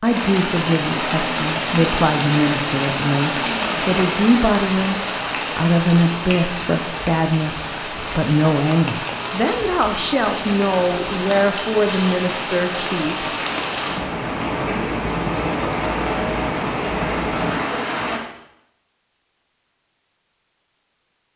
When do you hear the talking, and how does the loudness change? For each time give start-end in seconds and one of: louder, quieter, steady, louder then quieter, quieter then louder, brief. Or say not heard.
0.0-13.3 steady.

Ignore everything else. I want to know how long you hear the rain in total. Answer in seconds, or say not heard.
18 s.